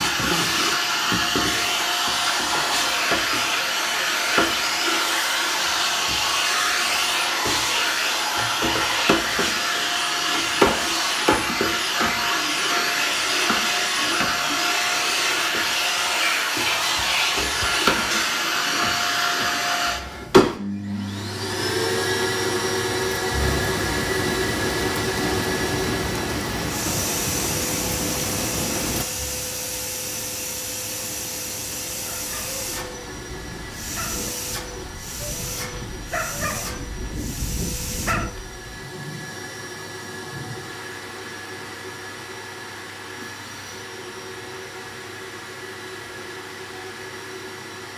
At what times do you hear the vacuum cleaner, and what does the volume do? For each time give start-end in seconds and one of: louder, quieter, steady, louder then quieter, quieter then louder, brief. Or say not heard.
0.0-47.9 quieter.